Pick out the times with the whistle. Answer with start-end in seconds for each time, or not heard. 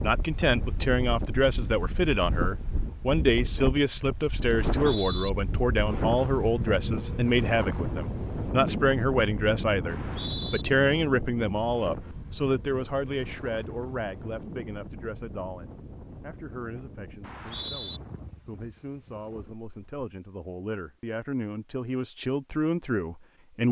4.5-5.3, 9.8-10.7, 17.2-18.0.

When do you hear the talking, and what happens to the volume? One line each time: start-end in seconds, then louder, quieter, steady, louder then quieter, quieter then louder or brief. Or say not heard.
0.0-23.6 quieter then louder.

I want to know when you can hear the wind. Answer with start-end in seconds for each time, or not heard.
0.0-19.9.